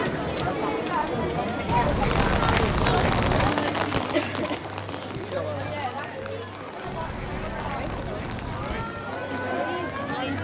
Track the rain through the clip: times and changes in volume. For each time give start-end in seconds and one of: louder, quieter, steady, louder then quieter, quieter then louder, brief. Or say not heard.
1.9-10.3 quieter.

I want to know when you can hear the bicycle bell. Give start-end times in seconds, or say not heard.
not heard.